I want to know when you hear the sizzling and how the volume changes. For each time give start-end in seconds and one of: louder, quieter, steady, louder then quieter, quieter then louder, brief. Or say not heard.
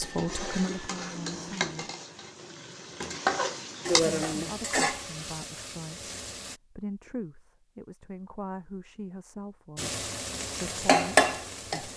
0.0-6.6 louder then quieter
9.8-11.9 brief.